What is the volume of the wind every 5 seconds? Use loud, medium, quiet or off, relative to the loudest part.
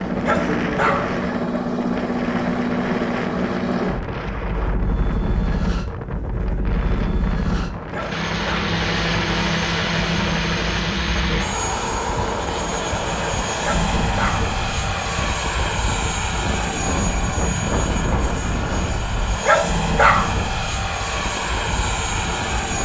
loud, loud, loud, loud, medium.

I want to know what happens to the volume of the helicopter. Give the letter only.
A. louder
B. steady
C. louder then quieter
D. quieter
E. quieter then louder
B.